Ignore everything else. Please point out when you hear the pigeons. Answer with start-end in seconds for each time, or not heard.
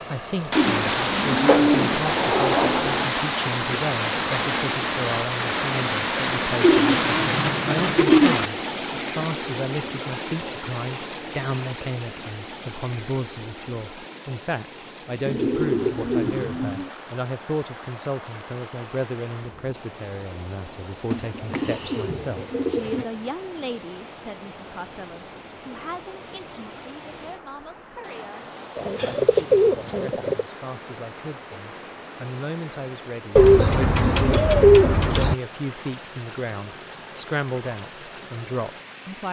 0.6-3.1, 6.6-8.5, 15.2-16.9, 21.1-23.1, 28.8-30.4, 33.4-35.4.